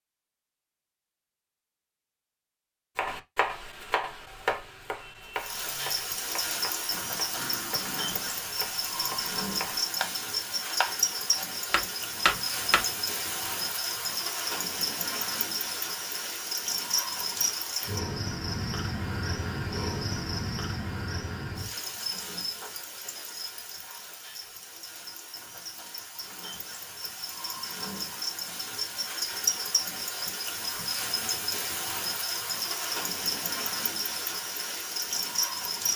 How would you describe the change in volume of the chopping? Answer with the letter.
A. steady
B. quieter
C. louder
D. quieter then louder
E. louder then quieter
D.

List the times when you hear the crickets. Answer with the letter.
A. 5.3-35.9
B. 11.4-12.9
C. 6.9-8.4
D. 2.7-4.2
A.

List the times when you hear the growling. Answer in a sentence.
The growling can be heard from 6.9 to 8.4 s.